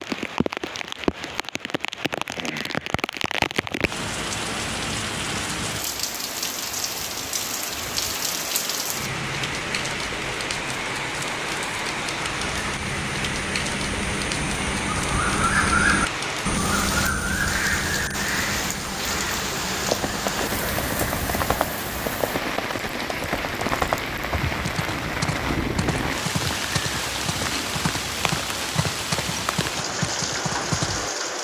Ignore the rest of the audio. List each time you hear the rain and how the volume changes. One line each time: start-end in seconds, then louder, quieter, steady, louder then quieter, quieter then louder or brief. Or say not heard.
0.0-31.3 steady.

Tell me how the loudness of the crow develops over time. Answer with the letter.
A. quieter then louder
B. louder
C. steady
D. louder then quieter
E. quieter
D.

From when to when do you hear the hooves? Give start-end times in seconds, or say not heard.
19.8-31.1.